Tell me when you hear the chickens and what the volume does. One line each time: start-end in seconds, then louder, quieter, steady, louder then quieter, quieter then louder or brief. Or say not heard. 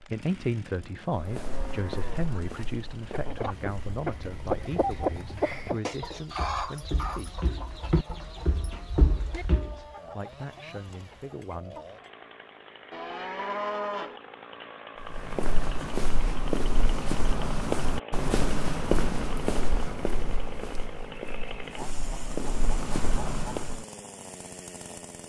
3.0-12.1 quieter.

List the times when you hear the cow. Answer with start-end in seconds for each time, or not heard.
0.7-2.6, 12.9-14.2.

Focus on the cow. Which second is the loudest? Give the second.
14 s.